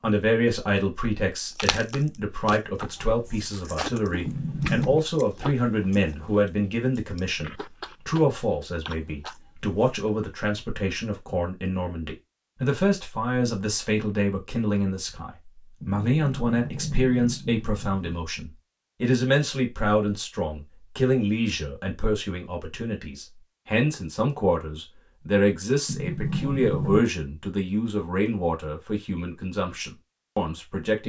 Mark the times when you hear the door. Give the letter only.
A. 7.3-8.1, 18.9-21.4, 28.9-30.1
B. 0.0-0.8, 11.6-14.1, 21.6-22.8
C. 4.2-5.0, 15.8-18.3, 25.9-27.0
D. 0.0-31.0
C.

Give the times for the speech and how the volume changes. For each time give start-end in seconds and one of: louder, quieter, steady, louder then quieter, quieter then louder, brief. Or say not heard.
0.0-31.0 steady.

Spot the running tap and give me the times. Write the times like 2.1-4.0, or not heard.
not heard.